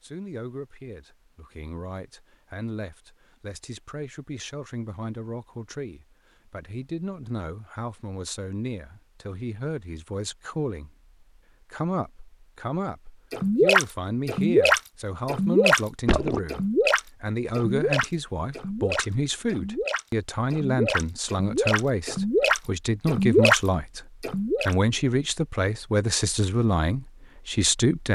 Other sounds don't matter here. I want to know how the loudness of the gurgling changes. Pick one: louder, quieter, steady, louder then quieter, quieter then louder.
quieter then louder.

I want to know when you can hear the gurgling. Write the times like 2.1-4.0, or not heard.
13.3-24.8.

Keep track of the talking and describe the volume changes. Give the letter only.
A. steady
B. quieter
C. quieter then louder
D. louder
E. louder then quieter
D.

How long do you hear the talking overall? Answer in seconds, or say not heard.
28 s.